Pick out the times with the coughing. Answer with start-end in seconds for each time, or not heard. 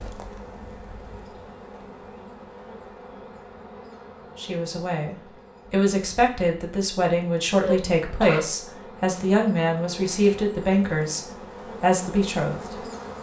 7.6-8.4.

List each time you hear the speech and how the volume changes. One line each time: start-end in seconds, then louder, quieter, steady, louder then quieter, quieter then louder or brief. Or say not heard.
4.3-12.8 steady.